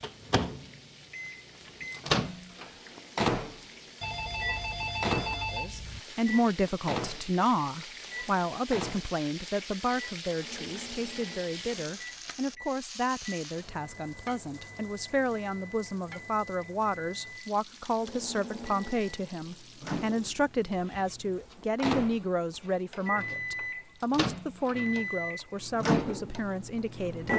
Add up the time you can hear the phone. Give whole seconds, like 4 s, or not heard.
2 s.